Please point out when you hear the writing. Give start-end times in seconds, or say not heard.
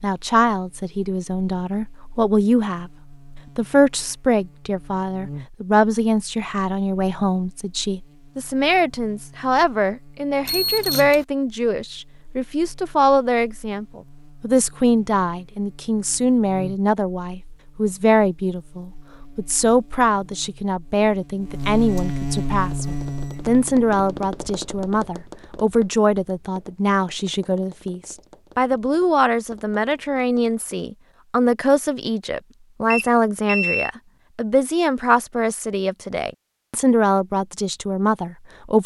not heard.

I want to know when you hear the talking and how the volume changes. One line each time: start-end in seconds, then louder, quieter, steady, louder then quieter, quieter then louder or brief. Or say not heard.
0.0-2.9 brief
3.5-38.8 steady.